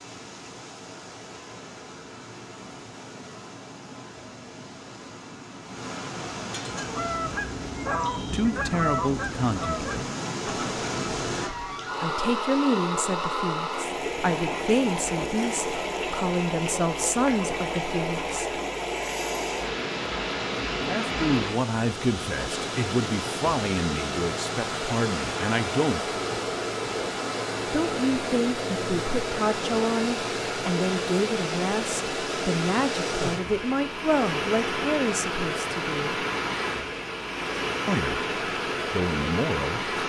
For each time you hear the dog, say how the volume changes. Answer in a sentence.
The dog can't be heard in this clip.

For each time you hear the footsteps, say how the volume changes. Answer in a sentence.
You can't hear the footsteps here.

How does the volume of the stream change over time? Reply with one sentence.
The volume of the stream goes up.